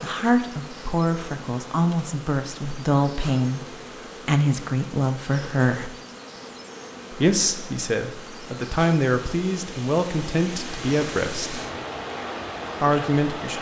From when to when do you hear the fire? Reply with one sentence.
The fire can't be heard in this clip.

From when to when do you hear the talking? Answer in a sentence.
The talking can be heard from 0.0 to 3.6 s, from 4.2 to 6.0 s, from 7.1 to 11.6 s and from 12.8 to 13.5 s.